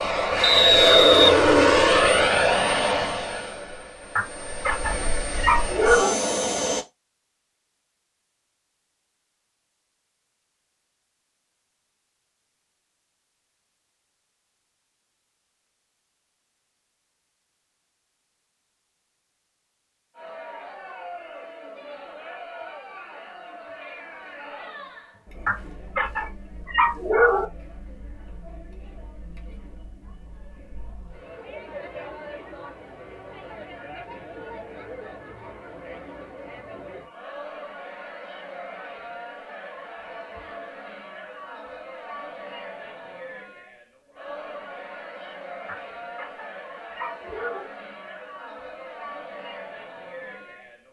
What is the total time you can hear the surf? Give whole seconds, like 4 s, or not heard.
not heard.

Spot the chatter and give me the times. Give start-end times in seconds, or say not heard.
20.1-50.8.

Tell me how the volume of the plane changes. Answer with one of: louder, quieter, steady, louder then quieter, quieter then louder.
quieter then louder.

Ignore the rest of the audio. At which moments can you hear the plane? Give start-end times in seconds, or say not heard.
0.0-6.8.